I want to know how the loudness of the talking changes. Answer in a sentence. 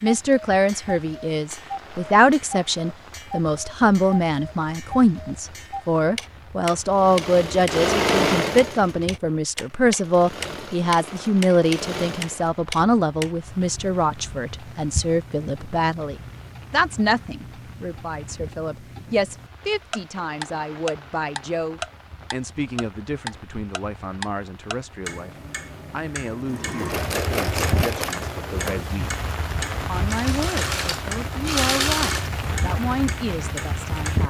The loudness of the talking goes down.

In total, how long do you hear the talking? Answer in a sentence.
You can hear the talking for 34 seconds altogether.